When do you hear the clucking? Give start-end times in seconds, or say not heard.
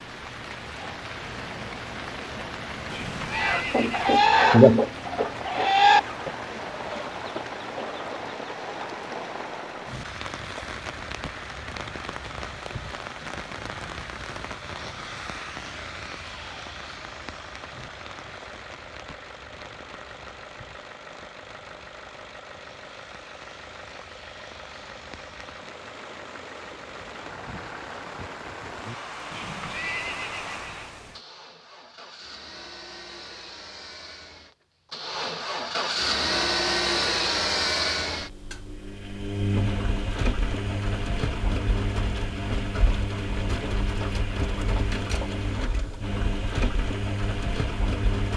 3.3-9.0.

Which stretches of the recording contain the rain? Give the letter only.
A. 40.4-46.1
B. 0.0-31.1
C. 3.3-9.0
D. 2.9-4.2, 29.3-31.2
B.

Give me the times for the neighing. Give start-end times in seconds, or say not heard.
2.9-4.2, 29.3-31.2.